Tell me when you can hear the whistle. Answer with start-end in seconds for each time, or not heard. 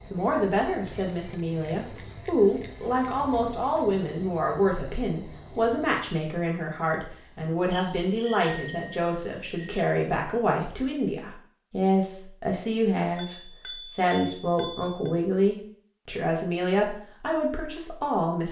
not heard.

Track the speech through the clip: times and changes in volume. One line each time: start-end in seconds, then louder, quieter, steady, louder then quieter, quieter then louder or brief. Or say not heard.
0.1-18.4 steady.